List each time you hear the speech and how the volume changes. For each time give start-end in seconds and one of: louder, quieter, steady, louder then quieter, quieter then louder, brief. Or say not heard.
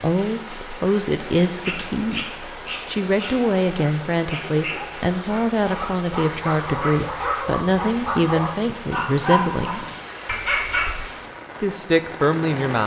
0.0-9.8 steady
11.6-12.8 brief.